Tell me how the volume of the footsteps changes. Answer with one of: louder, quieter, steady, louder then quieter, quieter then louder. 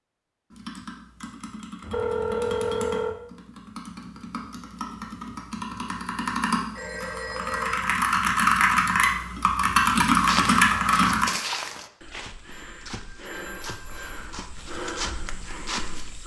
quieter then louder.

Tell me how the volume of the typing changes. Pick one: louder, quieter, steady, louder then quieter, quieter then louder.
louder.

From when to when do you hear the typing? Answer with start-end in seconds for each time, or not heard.
0.5-11.2.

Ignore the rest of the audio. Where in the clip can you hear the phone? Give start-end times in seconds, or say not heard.
1.8-3.1, 6.8-7.9, 12.5-14.3.